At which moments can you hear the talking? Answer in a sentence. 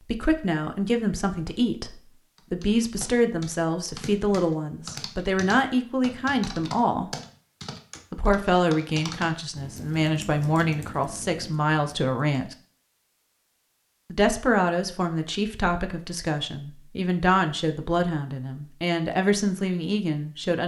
You can hear the talking from 0.1 to 7.1 s, from 8.1 to 12.6 s and from 14.1 to 20.6 s.